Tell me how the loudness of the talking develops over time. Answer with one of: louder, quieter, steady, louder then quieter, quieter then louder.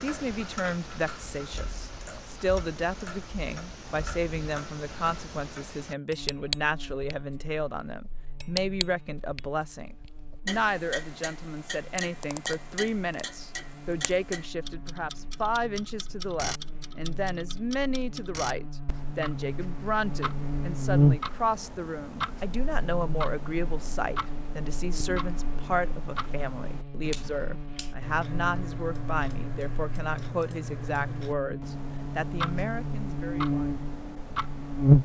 steady.